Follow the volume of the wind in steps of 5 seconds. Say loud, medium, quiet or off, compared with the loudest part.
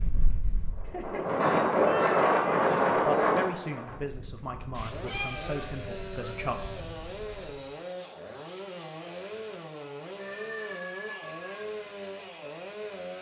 loud, quiet, off.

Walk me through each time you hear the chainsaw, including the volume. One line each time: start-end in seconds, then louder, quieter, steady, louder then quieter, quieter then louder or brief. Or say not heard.
4.9-13.1 steady.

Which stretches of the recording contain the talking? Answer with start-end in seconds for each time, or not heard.
3.0-6.5.